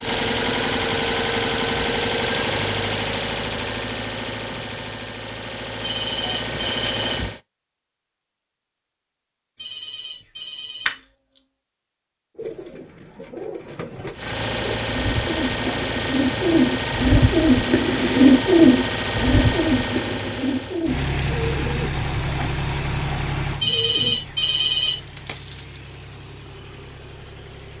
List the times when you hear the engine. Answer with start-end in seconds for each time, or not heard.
0.0-7.4, 14.1-27.7.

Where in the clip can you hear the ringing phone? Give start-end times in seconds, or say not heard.
5.8-7.2, 9.6-10.9, 23.6-25.0.